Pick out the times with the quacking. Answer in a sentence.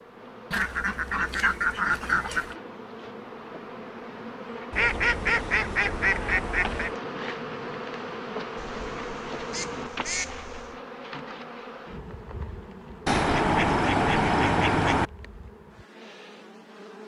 The quacking can be heard from 0.5 to 2.5 s, from 4.7 to 7.0 s, from 8.6 to 10.8 s and from 13.1 to 15.1 s.